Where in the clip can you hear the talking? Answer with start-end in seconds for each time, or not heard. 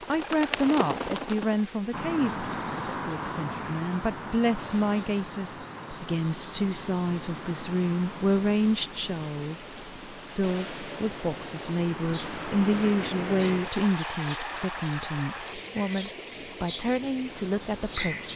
0.1-18.3.